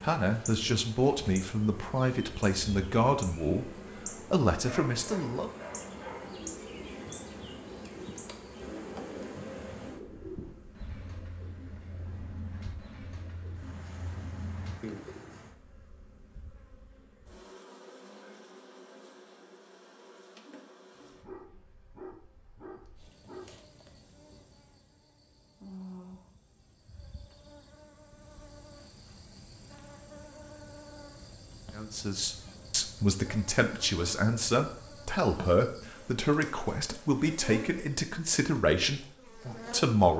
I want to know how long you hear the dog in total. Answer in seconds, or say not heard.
4 s.